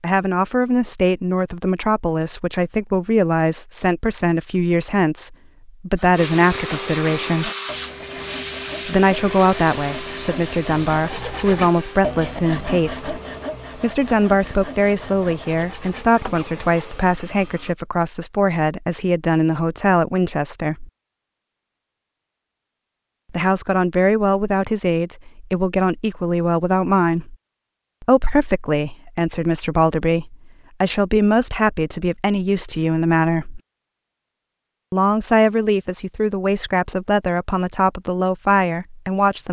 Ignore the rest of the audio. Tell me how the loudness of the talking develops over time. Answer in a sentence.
The volume of the talking stays about the same.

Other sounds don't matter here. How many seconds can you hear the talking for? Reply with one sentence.
The talking can be heard for 34 seconds in total.